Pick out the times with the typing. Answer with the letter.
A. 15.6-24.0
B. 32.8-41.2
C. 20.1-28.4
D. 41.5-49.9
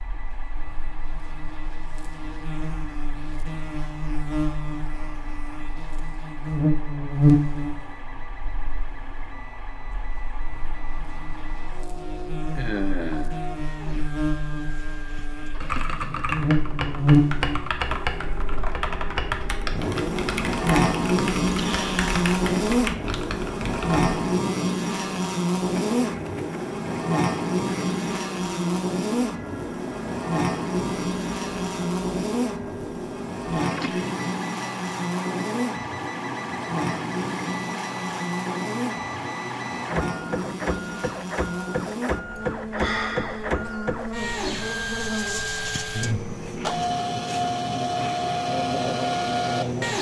A.